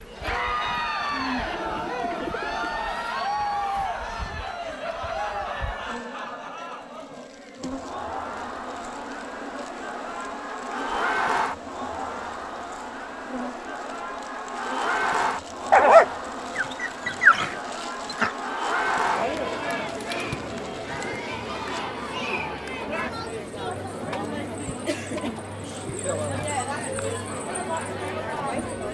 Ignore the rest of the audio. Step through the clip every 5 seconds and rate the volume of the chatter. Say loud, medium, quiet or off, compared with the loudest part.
loud, medium, loud, loud, loud, loud.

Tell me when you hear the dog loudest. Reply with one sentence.
The loudest moment of the dog is at 16 seconds.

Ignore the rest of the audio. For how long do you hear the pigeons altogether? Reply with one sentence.
You can hear the pigeons for 2 seconds altogether.